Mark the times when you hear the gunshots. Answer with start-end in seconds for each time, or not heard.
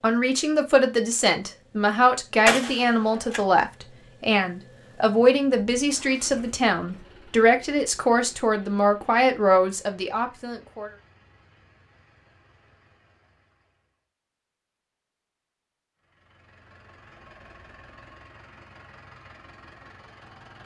2.5-3.4.